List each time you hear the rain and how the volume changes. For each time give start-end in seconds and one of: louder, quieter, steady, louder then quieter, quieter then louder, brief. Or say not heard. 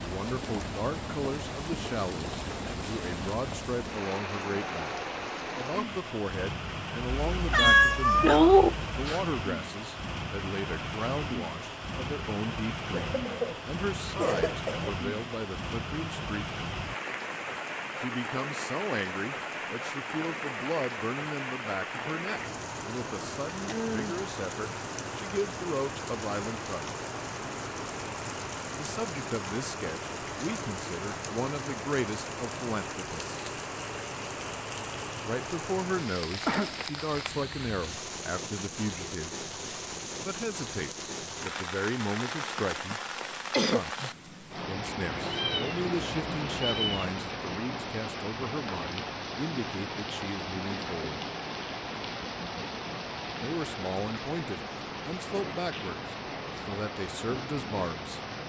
0.0-58.4 steady.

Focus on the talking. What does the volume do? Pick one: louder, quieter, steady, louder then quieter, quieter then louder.
steady.